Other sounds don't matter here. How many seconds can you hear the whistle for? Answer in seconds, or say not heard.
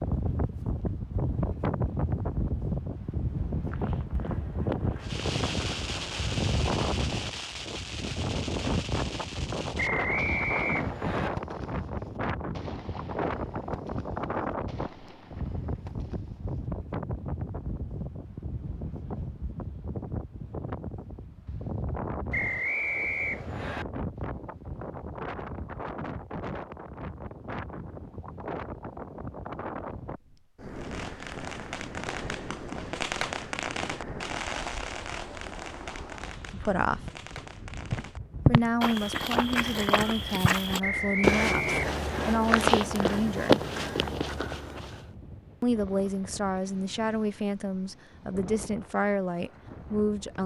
5 s.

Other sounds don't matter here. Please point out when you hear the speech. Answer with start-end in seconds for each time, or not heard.
36.5-37.0, 38.5-43.6, 45.6-50.4.